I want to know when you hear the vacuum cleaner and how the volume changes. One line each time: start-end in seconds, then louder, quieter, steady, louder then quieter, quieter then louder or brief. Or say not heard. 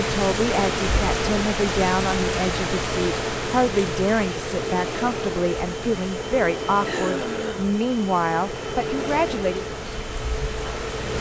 0.0-11.1 steady.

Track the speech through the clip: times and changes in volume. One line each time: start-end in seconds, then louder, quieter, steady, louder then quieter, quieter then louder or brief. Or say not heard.
0.0-9.7 steady.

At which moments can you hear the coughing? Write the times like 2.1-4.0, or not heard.
6.8-7.7.